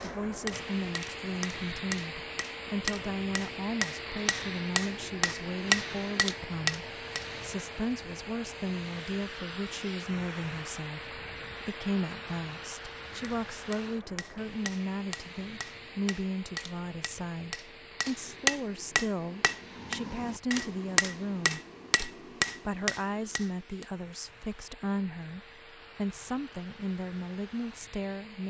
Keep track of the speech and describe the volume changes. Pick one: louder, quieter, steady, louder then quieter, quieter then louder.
steady.